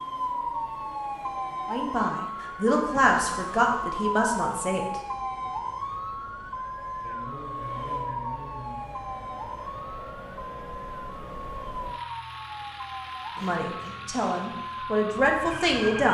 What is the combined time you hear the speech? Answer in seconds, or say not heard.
6 s.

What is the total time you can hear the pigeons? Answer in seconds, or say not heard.
not heard.